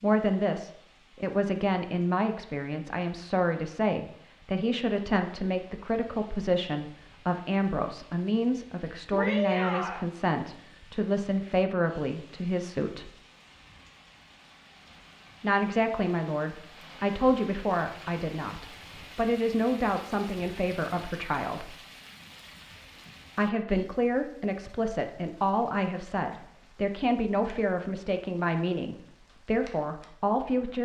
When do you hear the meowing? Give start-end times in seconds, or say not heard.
9.1-10.1.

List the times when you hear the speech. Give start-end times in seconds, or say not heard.
0.0-13.1, 15.4-21.8, 23.4-30.8.